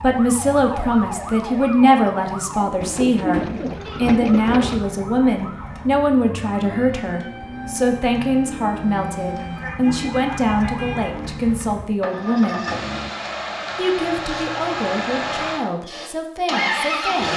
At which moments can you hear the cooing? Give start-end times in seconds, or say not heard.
2.8-4.8.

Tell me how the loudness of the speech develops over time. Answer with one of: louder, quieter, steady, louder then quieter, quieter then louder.
quieter.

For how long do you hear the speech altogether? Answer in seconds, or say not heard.
16 s.